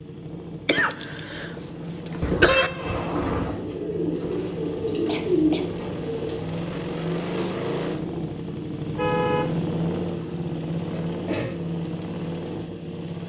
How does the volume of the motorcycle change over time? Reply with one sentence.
The loudness of the motorcycle goes up.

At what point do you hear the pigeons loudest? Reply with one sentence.
The volume of the pigeons peaks at 5 seconds.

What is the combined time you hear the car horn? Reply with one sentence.
The car horn can be heard for 3 seconds in total.